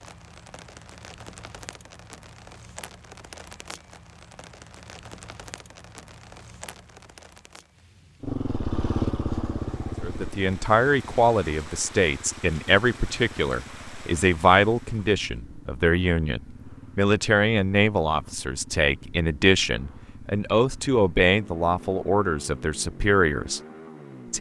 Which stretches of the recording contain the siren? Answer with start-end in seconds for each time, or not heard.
not heard.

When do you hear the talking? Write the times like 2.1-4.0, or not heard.
10.0-23.6.